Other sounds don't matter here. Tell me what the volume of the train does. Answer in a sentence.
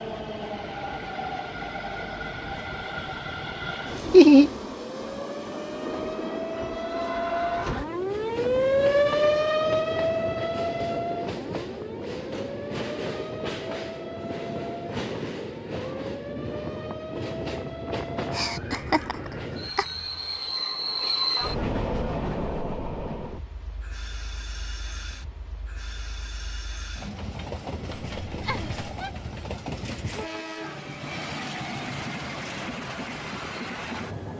The volume of the train stays about the same.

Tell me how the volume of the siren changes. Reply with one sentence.
The volume of the siren goes up, then down.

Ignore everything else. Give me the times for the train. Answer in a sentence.
You can hear the train from 0.0 to 34.3 s.